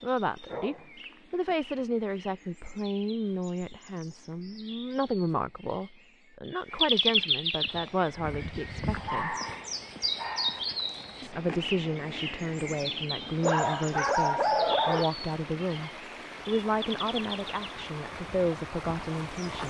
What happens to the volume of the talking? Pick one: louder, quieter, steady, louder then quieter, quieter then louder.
steady.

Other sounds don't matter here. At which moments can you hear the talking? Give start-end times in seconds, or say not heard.
0.0-9.3, 11.2-19.6.